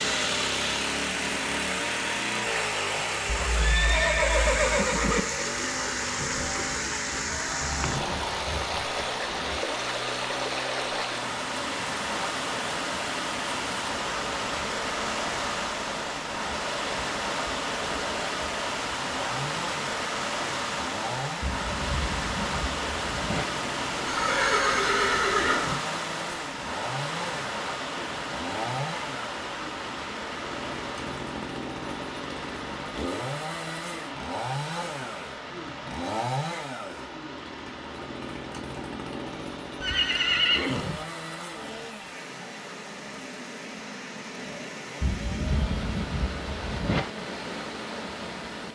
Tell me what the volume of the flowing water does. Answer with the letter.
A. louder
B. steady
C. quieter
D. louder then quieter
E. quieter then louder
C.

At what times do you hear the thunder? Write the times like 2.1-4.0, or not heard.
6.0-9.6, 21.4-23.4, 45.0-47.0.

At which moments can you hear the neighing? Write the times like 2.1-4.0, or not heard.
3.2-5.2, 24.1-25.8, 39.8-41.0.